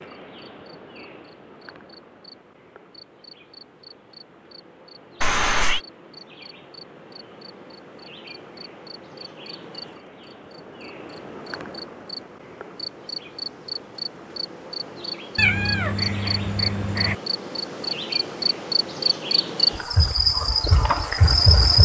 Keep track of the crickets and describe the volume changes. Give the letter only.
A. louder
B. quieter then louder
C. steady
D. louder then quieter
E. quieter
A.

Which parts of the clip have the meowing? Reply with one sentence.
The meowing can be heard from 5.2 to 5.8 s and from 15.3 to 17.1 s.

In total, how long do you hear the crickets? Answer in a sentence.
You can hear the crickets for 22 seconds altogether.